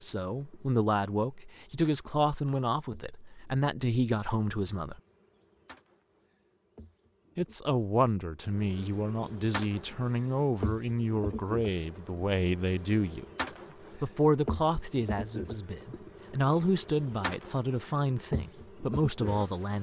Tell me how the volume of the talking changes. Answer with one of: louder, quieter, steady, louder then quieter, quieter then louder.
steady.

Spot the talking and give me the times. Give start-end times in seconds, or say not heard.
0.0-5.0, 7.3-19.7.